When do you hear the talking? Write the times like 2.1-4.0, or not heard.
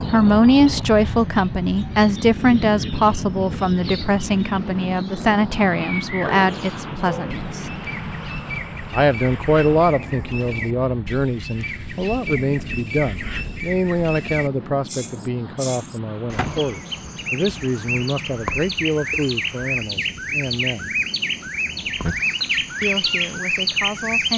0.1-7.7, 8.9-20.9, 22.8-24.3.